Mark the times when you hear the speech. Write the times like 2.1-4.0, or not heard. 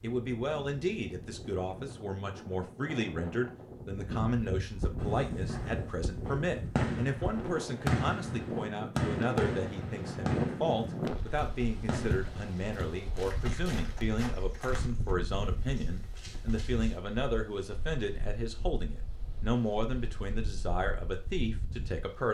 0.0-22.2.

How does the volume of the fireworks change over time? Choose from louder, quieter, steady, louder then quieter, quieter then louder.
louder then quieter.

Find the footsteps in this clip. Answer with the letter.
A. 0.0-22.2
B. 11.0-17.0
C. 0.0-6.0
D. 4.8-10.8
B.